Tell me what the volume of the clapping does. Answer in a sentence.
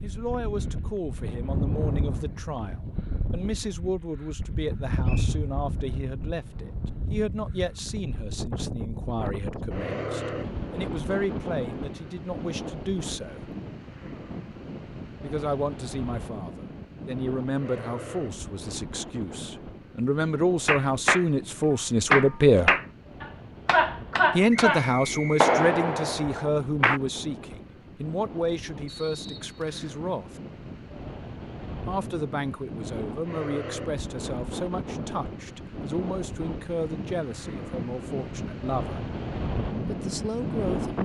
The volume of the clapping goes down.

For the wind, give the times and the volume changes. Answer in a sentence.
You can hear the wind from 0.0 to 41.0 s, getting quieter then louder.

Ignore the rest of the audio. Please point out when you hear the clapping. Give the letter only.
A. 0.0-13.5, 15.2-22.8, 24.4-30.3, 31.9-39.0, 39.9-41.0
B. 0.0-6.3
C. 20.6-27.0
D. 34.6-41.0
C.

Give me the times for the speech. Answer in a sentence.
The speech can be heard from 0.0 to 13.5 s, from 15.2 to 22.8 s, from 24.4 to 30.3 s, from 31.9 to 39.0 s and from 39.9 to 41.0 s.